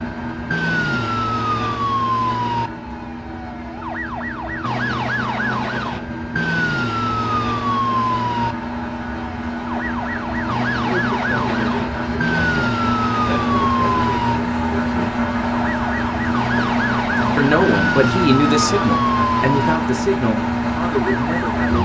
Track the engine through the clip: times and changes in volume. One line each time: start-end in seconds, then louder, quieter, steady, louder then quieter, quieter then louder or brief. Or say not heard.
0.0-21.7 louder.